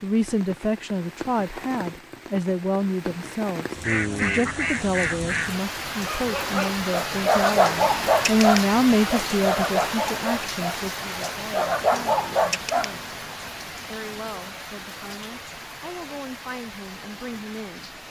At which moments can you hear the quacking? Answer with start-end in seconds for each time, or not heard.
3.8-5.5.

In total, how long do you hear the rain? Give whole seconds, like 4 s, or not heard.
18 s.